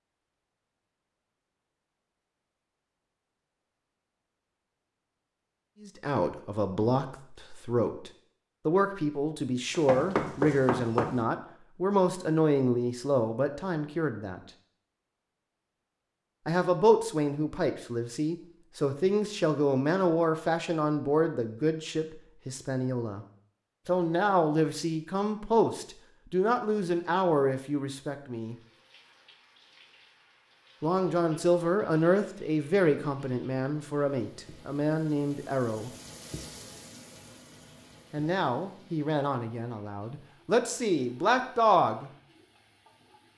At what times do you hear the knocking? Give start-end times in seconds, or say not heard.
9.7-11.2.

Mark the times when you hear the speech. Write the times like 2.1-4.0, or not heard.
5.8-14.4, 16.4-23.2, 23.9-28.6, 30.8-35.9, 38.1-42.1.